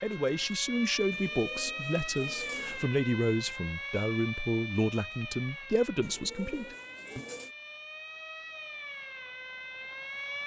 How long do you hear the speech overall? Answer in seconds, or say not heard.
7 s.